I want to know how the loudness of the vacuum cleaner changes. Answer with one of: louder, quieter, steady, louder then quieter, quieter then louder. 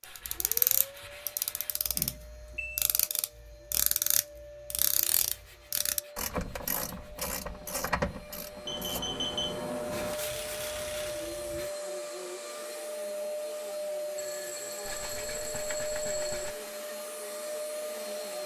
louder.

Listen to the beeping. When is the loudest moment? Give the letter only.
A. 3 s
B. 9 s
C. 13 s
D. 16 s
B.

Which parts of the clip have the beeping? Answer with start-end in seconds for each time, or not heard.
1.9-2.9, 8.7-10.2, 14.2-16.5.